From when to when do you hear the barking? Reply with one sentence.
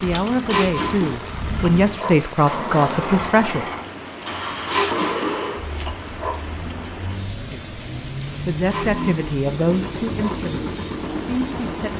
You can hear the barking from 0.5 to 2.1 s, from 4.7 to 6.4 s and from 8.7 to 10.3 s.